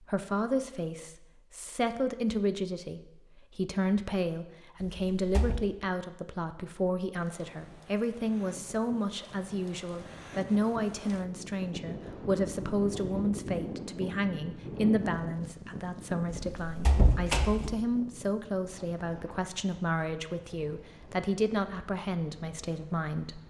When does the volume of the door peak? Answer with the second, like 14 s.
17 s.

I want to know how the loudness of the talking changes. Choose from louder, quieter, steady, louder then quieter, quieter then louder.
steady.